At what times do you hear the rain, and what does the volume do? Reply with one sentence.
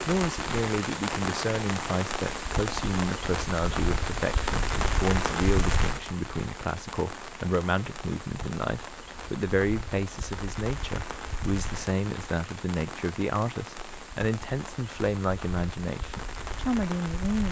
You can hear the rain from 0.0 to 17.4 s, getting quieter.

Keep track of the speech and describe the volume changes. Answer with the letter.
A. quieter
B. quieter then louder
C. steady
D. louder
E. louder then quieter
C.